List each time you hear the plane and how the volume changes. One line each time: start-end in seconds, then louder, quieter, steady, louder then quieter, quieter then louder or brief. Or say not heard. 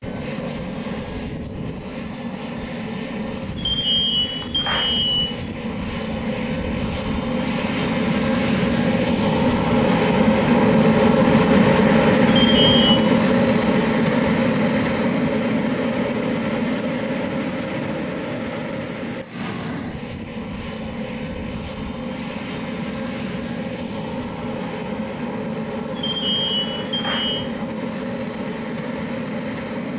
0.0-29.9 louder then quieter.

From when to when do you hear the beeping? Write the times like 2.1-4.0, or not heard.
3.5-5.1, 12.5-13.1, 25.9-27.4.